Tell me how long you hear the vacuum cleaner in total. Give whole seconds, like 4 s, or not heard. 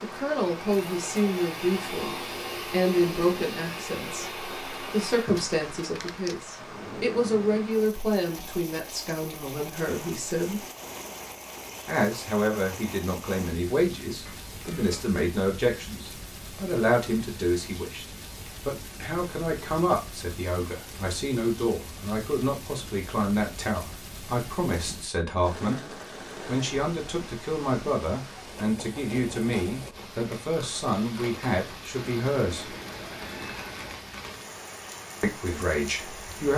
5 s.